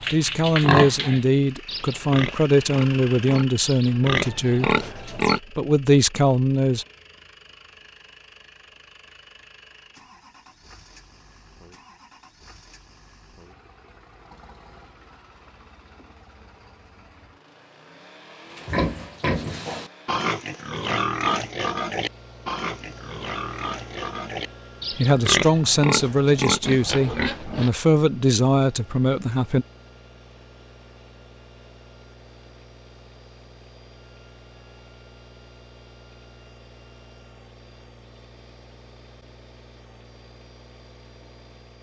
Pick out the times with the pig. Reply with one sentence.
The pig can be heard from 0.0 to 5.4 s and from 18.5 to 27.7 s.